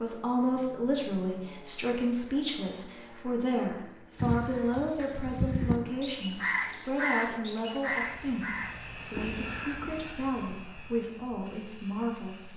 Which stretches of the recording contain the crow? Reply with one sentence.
You can hear the crow from 4.2 to 10.2 s.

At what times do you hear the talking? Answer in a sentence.
The talking can be heard from 0.0 to 12.5 s.